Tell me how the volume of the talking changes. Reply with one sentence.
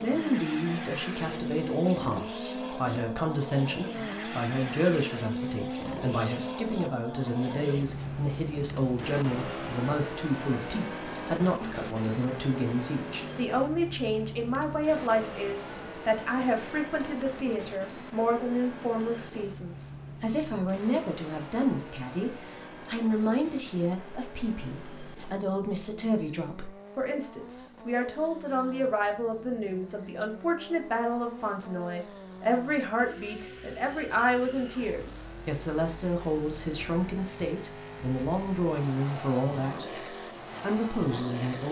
The loudness of the talking stays about the same.